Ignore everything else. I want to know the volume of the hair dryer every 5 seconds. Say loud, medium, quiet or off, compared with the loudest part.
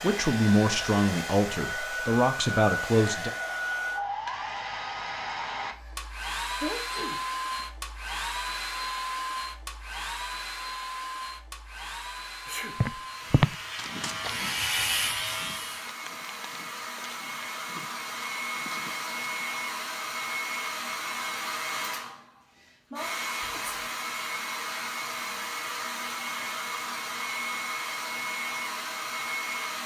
loud, loud, medium, loud, loud, loud.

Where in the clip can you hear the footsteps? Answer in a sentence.
You can hear the footsteps from 12.8 to 19.3 s.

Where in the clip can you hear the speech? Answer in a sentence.
The speech can be heard from 0.0 to 3.3 s.